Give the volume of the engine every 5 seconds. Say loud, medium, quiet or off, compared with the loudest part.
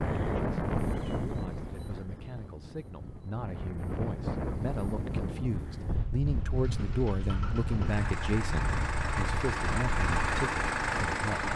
off, medium, loud.